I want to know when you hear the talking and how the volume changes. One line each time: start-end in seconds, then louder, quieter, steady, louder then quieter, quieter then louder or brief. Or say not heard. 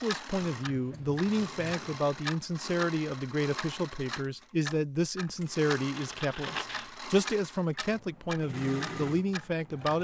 0.0-9.9 steady.